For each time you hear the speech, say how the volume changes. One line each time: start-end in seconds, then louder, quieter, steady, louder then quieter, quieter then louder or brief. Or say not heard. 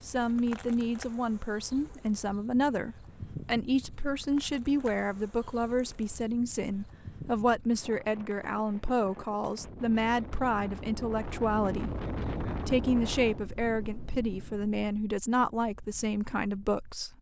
0.0-17.1 steady.